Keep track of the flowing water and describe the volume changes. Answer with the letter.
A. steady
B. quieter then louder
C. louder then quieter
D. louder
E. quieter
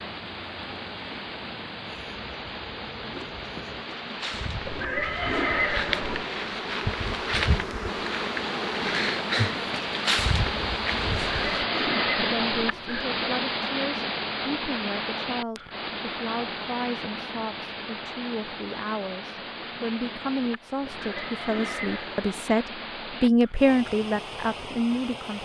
C.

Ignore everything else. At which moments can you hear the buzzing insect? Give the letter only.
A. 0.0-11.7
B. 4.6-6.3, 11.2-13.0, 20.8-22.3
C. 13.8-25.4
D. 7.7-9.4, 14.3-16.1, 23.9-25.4
A.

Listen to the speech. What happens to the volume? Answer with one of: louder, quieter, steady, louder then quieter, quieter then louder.
louder.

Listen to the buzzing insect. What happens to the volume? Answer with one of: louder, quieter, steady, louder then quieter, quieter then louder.
louder.